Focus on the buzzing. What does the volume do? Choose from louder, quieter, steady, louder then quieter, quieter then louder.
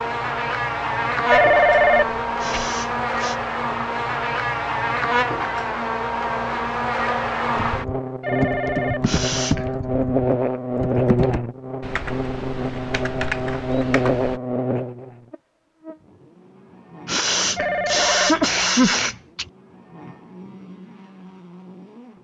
quieter.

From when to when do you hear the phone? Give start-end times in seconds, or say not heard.
1.2-2.6, 8.2-9.7, 17.6-19.1.